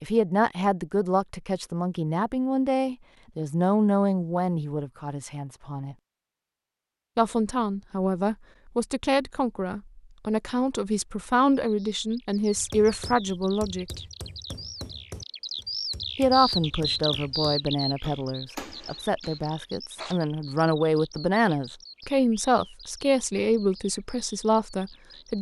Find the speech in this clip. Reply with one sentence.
The speech can be heard from 0.0 to 6.0 s, from 7.2 to 14.0 s and from 16.1 to 25.3 s.